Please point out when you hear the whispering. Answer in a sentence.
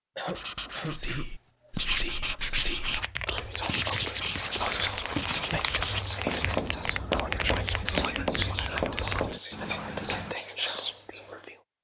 You can hear the whispering from 0.8 to 11.6 s.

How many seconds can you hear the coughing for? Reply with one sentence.
You can hear the coughing for 2 seconds altogether.